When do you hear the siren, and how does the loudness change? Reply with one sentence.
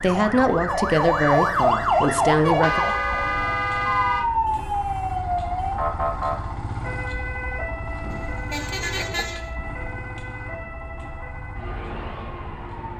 You can hear the siren from 0.0 to 12.9 s, getting quieter.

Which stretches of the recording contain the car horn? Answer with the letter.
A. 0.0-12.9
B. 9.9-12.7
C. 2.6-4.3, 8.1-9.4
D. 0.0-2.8
C.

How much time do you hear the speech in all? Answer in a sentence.
You can hear the speech for 3 seconds altogether.